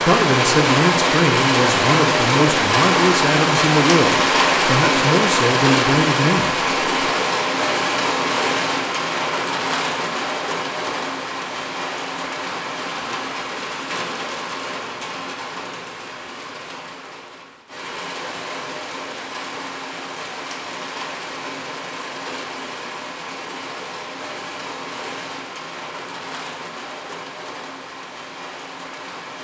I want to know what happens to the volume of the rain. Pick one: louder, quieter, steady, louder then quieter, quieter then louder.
quieter.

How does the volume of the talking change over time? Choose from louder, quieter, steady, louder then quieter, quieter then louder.
steady.